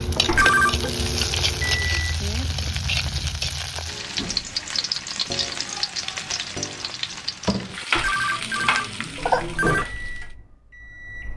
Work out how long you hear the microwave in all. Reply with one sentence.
You can hear the microwave for 4 seconds altogether.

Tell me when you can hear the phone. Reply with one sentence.
You can hear the phone from 0.2 to 0.9 s and from 8.0 to 9.8 s.